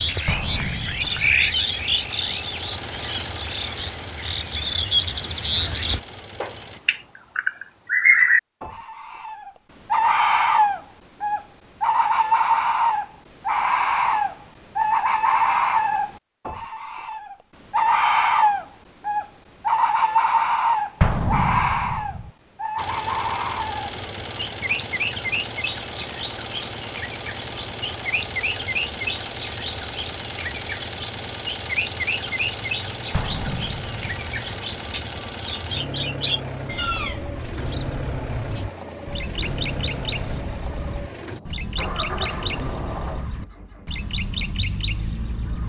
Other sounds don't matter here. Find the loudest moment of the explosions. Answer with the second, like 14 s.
21 s.